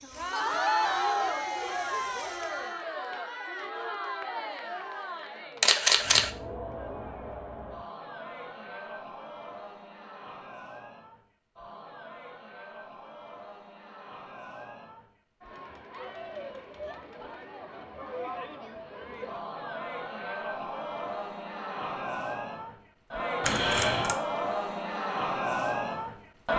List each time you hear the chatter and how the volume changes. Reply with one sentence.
The chatter can be heard from 0.0 to 26.5 s, getting quieter then louder.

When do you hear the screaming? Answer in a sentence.
The screaming can be heard from 0.3 to 1.4 s.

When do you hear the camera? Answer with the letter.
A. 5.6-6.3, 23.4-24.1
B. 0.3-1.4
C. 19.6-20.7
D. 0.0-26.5
A.